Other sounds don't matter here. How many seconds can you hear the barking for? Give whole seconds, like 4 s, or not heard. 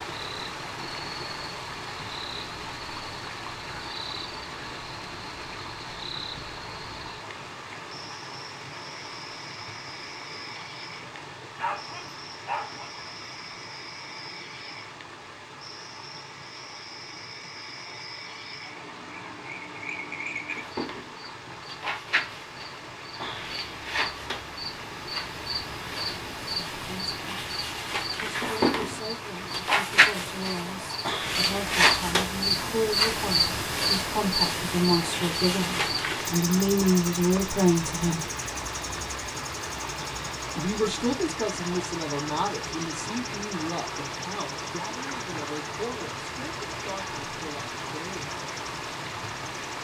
2 s.